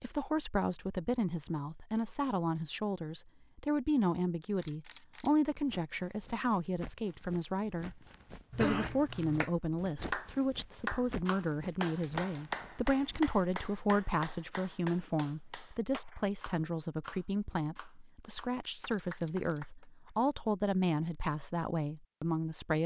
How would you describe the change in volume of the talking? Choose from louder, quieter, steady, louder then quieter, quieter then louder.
steady.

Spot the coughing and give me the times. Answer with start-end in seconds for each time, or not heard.
8.5-9.5.